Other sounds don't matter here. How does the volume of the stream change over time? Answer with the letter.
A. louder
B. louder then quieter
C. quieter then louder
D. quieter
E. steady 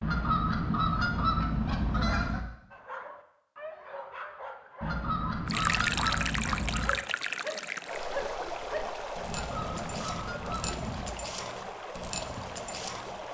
D.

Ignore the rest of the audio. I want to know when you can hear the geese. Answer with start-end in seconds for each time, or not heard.
0.0-2.5, 4.8-6.9, 9.2-11.2.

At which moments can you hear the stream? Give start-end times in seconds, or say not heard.
5.5-13.2.